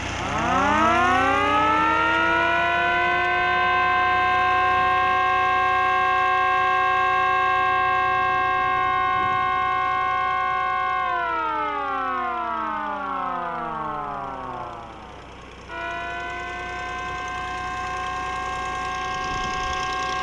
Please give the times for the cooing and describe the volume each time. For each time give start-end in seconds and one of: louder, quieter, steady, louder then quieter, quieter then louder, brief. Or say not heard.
not heard.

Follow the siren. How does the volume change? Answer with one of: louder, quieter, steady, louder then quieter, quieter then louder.
quieter.